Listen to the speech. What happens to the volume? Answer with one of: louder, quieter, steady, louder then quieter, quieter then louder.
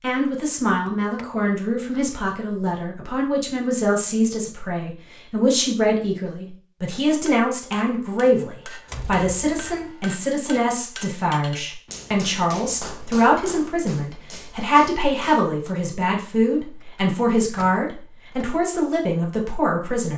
steady.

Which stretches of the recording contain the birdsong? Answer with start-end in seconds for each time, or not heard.
not heard.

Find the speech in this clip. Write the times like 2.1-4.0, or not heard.
0.0-20.1.